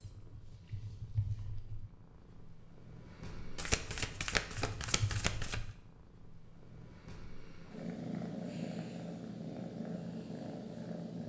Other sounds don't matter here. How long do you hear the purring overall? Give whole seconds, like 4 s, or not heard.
11 s.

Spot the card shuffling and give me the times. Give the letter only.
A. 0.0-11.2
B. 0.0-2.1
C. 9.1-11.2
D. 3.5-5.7
D.